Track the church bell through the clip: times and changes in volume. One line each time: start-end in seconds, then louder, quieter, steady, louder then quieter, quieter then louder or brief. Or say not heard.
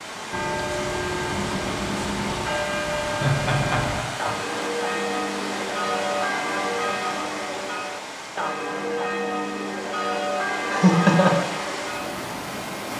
0.3-12.2 steady.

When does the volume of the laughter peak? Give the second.
11 s.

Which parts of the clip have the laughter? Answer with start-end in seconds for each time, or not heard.
3.1-4.3, 10.6-11.3.